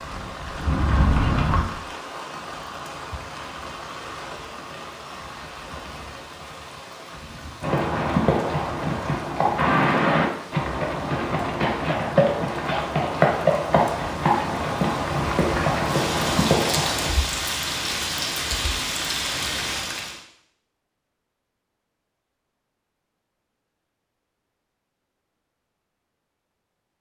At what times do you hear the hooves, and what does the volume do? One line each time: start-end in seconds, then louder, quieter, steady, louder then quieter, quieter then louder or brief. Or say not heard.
0.0-1.6 brief
7.6-17.1 steady.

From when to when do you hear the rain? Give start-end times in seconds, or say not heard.
0.0-20.2.